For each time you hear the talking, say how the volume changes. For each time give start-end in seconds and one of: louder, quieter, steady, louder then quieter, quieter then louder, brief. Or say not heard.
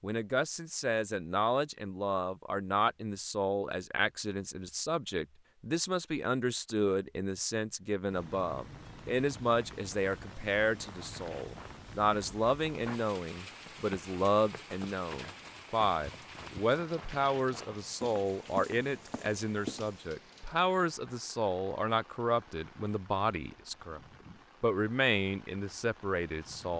0.0-24.0 steady
24.6-26.7 brief.